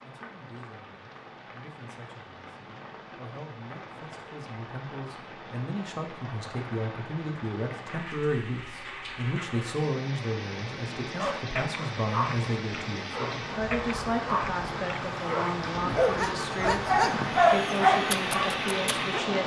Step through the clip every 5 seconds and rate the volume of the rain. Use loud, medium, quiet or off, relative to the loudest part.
quiet, medium, medium, loud.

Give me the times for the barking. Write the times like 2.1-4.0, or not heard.
11.2-19.2.